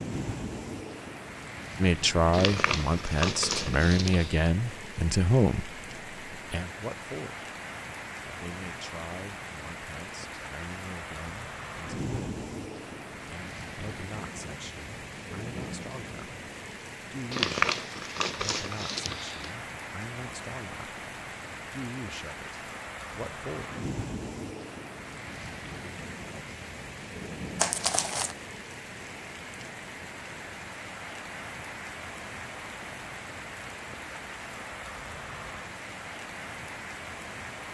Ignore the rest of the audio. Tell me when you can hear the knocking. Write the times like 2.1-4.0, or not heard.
not heard.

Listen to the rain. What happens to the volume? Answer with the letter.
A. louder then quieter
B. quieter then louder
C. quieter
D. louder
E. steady
E.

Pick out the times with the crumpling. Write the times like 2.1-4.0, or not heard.
2.3-4.5, 17.3-19.5, 27.6-28.4.